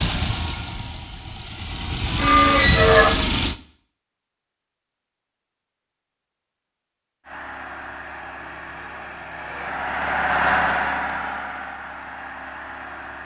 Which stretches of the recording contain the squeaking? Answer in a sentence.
You can hear the squeaking from 2.1 to 3.1 s.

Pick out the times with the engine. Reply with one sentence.
You can hear the engine from 0.0 to 3.5 s and from 7.2 to 13.1 s.